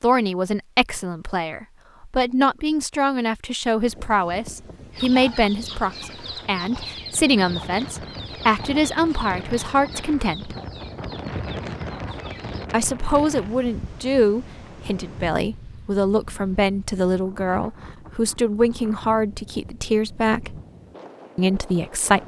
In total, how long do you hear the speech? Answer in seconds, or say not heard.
19 s.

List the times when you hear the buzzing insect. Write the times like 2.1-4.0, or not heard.
not heard.